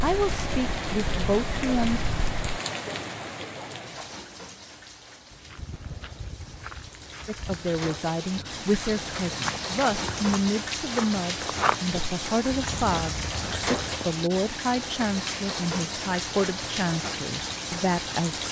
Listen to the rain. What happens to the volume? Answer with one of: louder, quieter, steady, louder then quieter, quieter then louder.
quieter then louder.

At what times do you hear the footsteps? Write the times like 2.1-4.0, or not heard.
5.3-14.2.